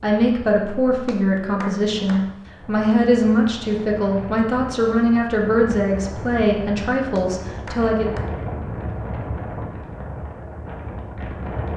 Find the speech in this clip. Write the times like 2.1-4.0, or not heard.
0.0-8.2.